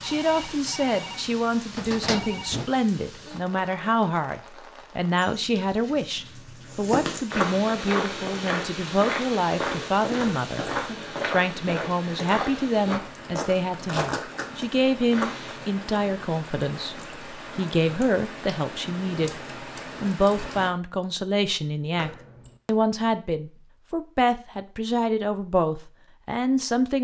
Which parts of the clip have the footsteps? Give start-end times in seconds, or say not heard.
6.7-15.8.